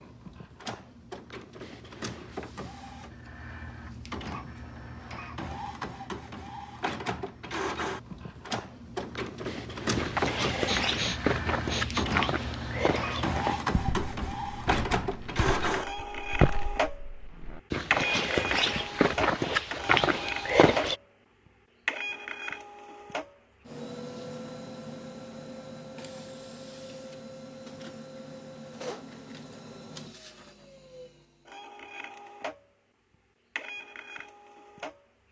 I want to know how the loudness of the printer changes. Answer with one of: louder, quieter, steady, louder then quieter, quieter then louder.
louder then quieter.